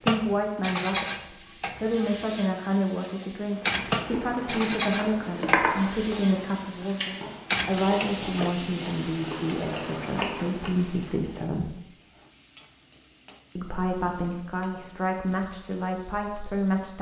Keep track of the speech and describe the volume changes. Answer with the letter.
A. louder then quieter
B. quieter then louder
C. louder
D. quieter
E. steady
E.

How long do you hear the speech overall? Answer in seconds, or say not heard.
15 s.